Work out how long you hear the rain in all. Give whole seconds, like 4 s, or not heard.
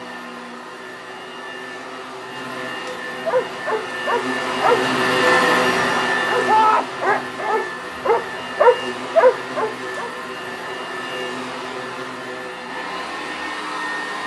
not heard.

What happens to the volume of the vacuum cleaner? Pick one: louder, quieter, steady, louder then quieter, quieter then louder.
louder then quieter.